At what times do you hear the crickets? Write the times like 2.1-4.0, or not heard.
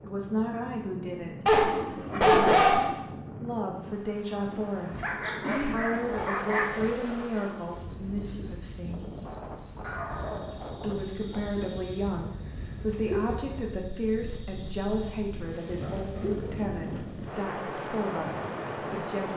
5.2-19.3.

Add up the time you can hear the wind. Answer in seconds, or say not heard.
19 s.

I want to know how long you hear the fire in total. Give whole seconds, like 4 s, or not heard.
not heard.